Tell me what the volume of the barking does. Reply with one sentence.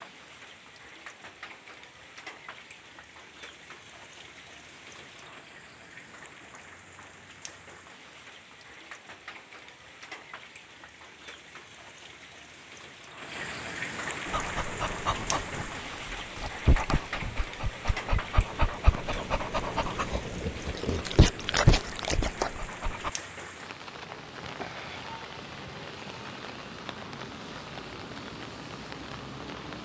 The volume of the barking goes up.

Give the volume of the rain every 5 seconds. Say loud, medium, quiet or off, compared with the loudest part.
medium, medium, loud, loud, loud, loud.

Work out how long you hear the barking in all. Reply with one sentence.
The barking can be heard for 9 seconds in total.